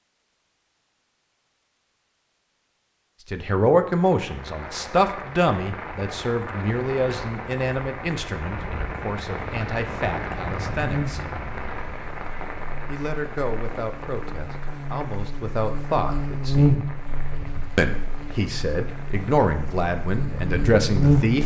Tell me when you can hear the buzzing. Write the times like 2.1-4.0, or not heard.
10.8-21.4.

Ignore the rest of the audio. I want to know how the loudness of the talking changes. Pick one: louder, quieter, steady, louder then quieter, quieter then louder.
quieter then louder.